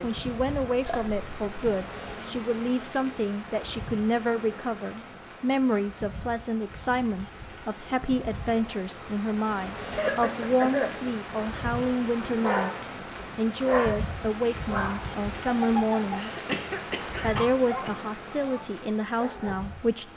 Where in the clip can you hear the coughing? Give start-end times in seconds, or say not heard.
0.8-1.8, 9.9-11.1, 16.1-17.9.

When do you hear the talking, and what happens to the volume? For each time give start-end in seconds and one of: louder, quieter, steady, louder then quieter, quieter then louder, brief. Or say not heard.
0.0-16.4 steady
17.2-20.1 brief.